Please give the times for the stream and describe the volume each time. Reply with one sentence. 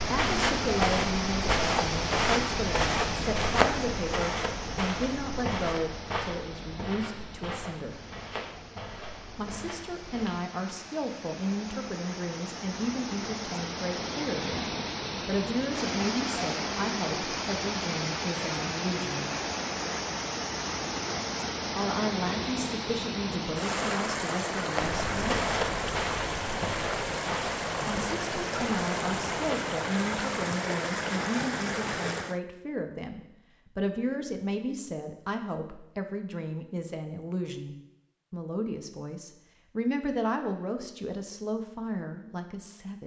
You can hear the stream from 0.0 to 32.4 s, getting quieter then louder.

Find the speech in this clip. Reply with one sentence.
The speech can be heard from 0.1 to 8.0 s, from 9.3 to 19.3 s, from 21.8 to 25.5 s and from 27.9 to 43.0 s.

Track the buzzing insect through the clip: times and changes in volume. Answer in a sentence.
The buzzing insect can't be heard in this clip.